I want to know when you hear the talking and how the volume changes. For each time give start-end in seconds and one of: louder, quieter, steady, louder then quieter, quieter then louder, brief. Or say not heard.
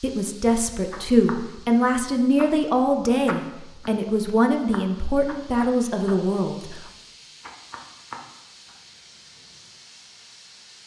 0.0-6.8 steady.